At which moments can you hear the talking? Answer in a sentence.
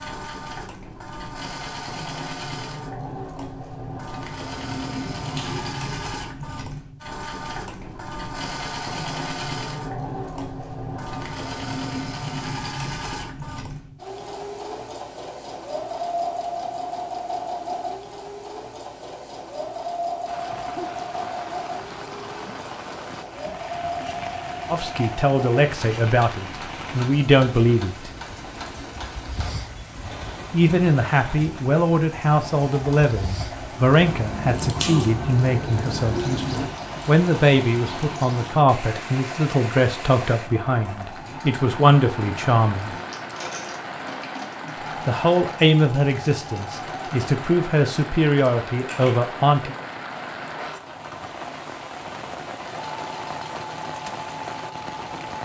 You can hear the talking from 24.7 to 28.1 s, from 30.5 to 43.0 s and from 45.0 to 49.8 s.